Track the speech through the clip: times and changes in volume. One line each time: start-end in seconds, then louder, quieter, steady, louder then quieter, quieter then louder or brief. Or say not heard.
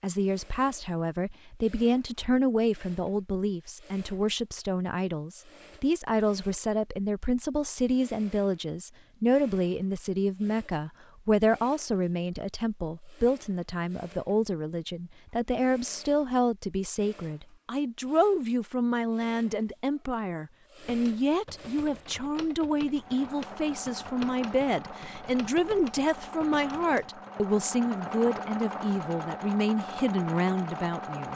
0.0-31.2 steady.